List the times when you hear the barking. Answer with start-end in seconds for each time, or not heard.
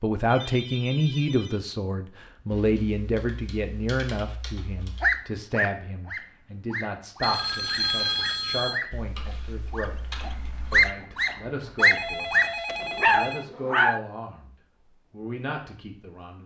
5.0-14.0.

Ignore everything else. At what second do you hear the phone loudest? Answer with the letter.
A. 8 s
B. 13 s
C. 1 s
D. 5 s
A.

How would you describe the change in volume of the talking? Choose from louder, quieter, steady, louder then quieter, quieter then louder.
quieter.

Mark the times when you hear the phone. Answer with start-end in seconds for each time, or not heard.
0.3-1.6, 7.2-8.8, 11.8-13.5.